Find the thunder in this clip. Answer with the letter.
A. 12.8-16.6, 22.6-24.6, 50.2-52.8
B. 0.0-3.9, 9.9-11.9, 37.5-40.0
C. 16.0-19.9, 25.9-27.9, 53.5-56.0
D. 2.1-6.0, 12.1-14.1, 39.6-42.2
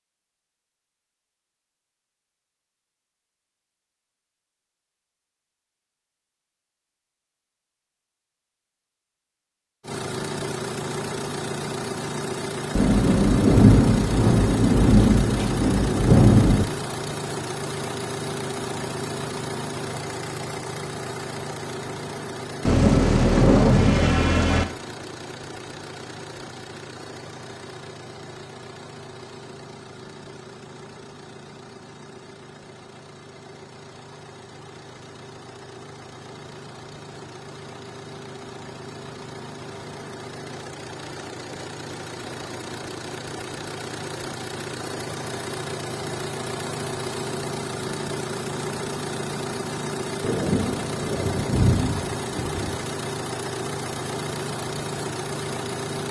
A.